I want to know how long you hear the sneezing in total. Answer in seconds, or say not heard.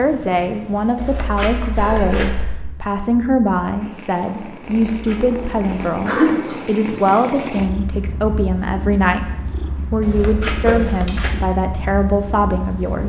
2 s.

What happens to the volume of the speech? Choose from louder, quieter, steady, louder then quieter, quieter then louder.
steady.